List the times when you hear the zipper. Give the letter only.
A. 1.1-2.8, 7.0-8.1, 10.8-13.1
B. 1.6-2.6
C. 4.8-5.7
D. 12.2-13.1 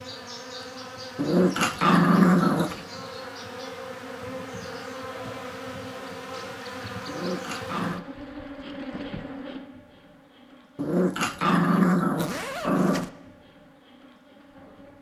D.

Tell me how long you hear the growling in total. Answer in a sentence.
The growling can be heard for 5 seconds in total.